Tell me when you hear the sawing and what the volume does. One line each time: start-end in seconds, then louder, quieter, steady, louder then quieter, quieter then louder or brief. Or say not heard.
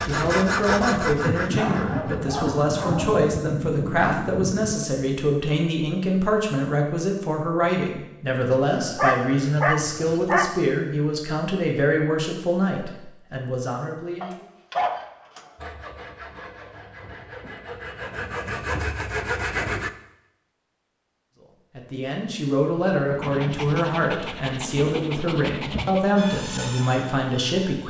0.0-2.2 brief
15.6-19.9 louder
26.1-27.8 brief.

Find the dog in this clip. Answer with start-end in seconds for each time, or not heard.
1.6-3.2, 8.7-10.5, 14.2-15.6, 23.2-26.1.